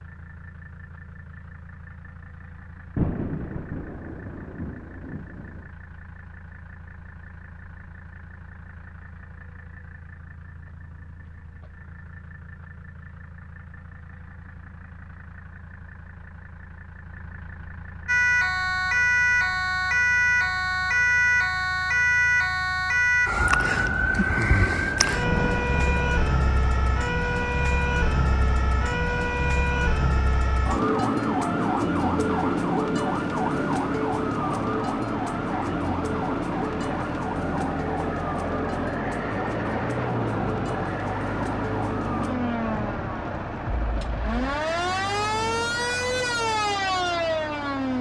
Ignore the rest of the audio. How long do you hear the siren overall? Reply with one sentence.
You can hear the siren for 30 seconds altogether.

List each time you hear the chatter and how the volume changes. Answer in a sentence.
You can't hear the chatter here.